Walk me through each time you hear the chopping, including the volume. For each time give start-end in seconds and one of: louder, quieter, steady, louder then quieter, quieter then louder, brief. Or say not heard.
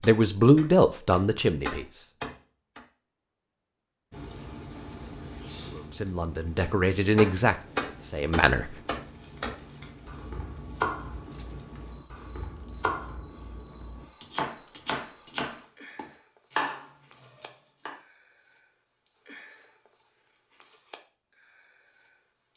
0.0-2.9 brief
6.5-17.9 quieter then louder.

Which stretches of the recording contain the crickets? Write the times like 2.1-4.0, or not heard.
4.1-22.5.